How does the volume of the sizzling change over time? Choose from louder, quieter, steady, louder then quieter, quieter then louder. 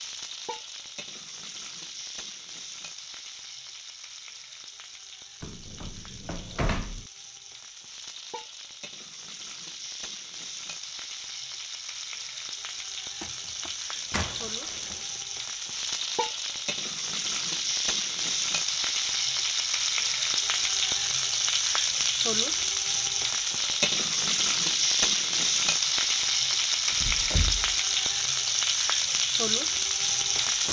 louder.